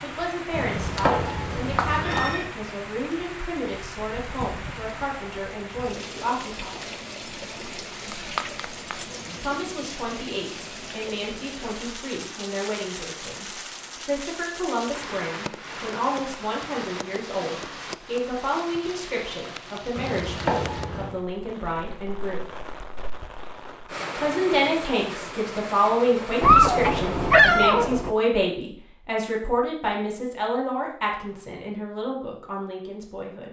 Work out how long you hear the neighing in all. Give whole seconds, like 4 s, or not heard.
3 s.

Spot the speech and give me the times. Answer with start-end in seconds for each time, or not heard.
0.0-7.0, 9.4-22.5, 24.1-33.4.